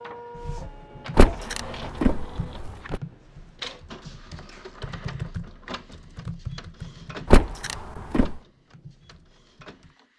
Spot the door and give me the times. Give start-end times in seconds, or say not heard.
1.1-3.0, 7.3-8.4.